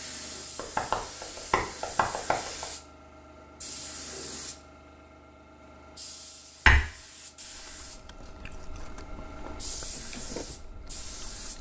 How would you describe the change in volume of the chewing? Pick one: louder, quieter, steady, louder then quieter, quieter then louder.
louder then quieter.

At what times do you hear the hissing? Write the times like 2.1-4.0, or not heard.
0.0-11.5.